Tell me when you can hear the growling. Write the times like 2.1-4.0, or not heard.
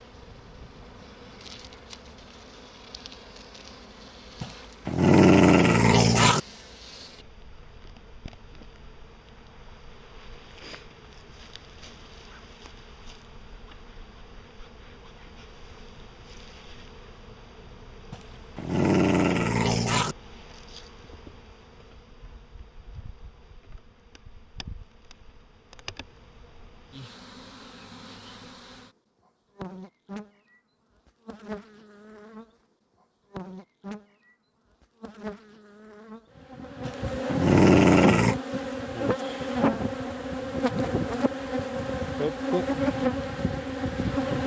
4.4-6.4, 18.1-20.1, 36.9-38.4.